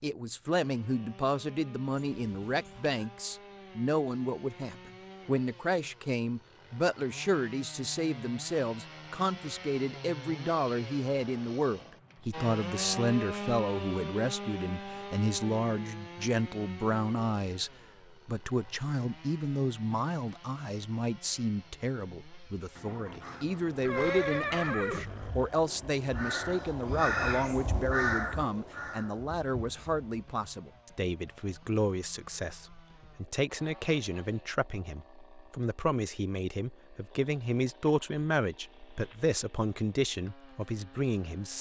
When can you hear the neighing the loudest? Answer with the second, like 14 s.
24 s.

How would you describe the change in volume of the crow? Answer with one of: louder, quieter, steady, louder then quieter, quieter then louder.
louder then quieter.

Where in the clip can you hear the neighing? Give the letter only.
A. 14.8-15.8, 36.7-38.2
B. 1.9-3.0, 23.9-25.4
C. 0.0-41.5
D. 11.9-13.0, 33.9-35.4
B.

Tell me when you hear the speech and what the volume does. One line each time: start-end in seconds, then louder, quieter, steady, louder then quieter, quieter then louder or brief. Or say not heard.
0.0-41.5 steady.